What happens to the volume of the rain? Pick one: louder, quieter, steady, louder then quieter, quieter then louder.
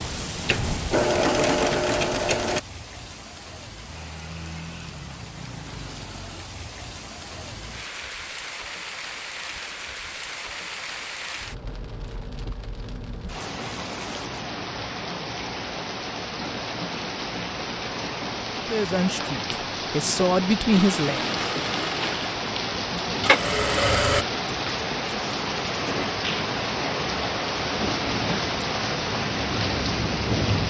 louder.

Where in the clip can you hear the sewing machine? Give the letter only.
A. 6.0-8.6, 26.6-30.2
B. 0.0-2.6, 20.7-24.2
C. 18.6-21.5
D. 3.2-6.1
B.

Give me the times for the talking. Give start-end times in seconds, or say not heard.
18.6-21.5.